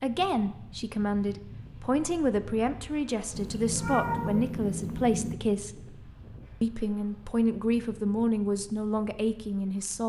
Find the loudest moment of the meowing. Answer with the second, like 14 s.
4 s.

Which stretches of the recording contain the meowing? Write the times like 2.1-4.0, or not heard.
3.3-5.3.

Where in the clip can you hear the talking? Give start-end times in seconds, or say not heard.
0.0-5.8, 6.6-10.0.